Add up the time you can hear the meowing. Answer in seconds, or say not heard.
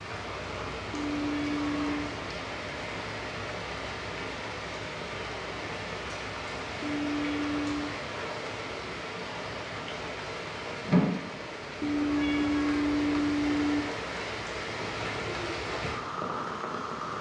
4 s.